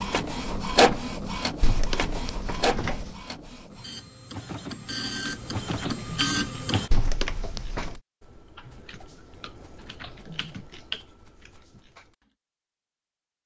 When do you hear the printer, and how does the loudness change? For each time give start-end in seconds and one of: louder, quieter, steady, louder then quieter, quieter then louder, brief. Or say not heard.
0.0-6.9 quieter then louder.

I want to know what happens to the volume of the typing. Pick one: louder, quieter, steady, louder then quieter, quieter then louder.
quieter then louder.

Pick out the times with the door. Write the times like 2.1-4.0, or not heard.
1.6-3.1, 6.9-8.0.